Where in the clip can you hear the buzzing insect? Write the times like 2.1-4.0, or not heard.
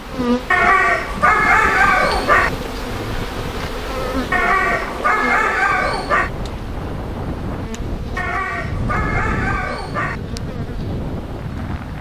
0.0-11.9.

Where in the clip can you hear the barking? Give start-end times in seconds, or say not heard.
0.5-2.5, 4.3-6.3, 8.2-10.2.